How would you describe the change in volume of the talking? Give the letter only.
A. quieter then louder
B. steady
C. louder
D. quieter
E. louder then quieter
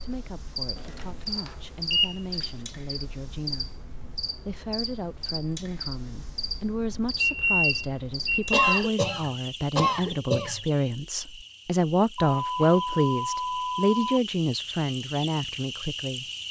C.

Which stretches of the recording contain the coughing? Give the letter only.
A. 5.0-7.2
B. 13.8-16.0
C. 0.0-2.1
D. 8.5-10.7
D.